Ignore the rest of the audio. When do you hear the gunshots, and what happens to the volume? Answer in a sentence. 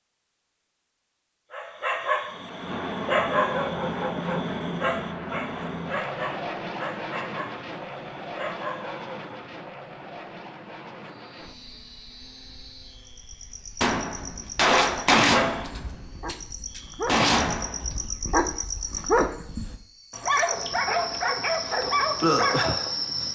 You can hear the gunshots from 13.8 to 18.1 s, getting quieter then louder.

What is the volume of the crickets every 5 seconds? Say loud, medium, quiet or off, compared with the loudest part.
off, off, quiet, medium, loud.